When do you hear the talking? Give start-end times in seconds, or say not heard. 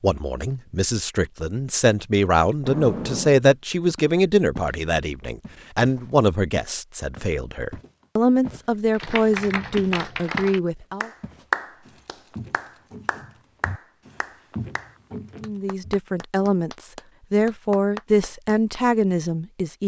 0.0-11.1, 15.4-19.8.